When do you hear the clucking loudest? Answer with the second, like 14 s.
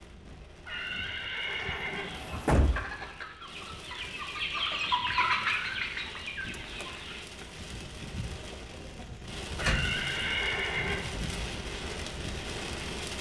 5 s.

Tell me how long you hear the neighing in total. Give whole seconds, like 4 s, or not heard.
3 s.